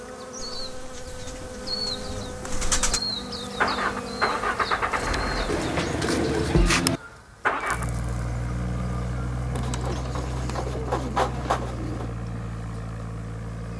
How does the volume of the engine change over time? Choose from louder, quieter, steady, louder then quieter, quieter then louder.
quieter.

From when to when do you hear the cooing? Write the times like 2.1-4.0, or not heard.
0.4-3.0, 5.5-7.0, 9.6-12.2.